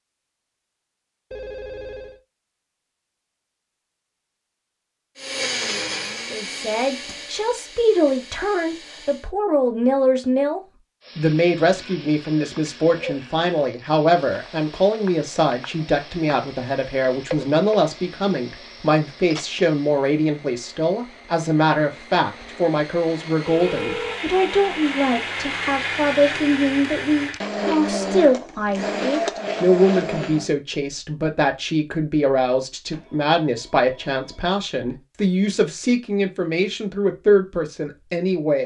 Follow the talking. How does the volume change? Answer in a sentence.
The loudness of the talking stays about the same.